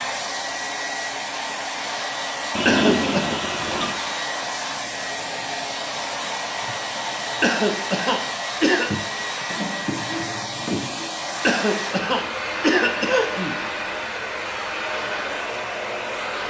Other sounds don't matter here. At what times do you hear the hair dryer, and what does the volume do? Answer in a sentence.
You can hear the hair dryer from 0.0 to 16.4 s, at a steady volume.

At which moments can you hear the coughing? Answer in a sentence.
The coughing can be heard from 2.6 to 3.4 s, from 7.4 to 8.9 s and from 11.4 to 13.6 s.